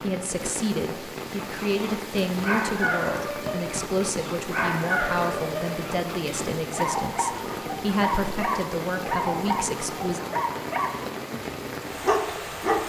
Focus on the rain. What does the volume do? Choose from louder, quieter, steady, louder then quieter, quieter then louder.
steady.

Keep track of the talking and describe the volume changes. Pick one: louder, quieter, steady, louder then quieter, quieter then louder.
steady.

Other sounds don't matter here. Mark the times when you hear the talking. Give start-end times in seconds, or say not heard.
0.0-10.2.